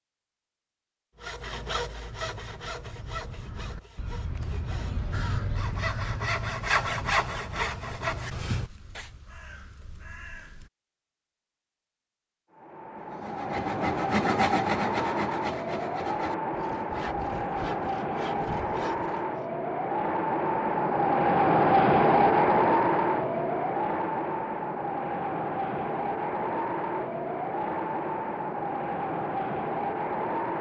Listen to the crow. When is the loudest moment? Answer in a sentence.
The loudest moment of the crow is at 5 seconds.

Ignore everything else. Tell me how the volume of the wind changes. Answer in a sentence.
The volume of the wind goes up, then down.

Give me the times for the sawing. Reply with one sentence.
You can hear the sawing from 1.2 to 9.1 s and from 12.9 to 19.4 s.